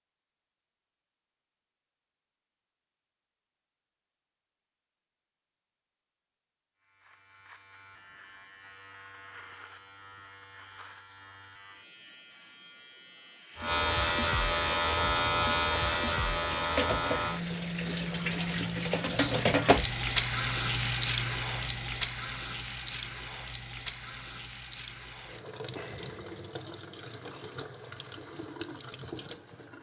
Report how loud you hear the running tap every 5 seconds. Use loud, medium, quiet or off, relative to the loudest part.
off, off, off, loud, loud, medium.